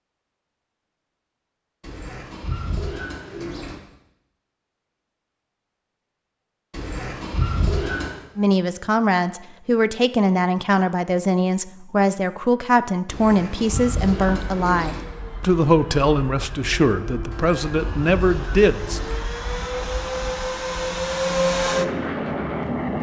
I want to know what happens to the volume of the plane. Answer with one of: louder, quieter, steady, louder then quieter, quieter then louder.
louder.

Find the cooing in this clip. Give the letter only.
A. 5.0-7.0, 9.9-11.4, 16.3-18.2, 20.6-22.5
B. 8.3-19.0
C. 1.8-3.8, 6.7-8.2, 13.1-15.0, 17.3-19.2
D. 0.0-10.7
C.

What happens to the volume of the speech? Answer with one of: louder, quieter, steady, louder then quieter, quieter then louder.
steady.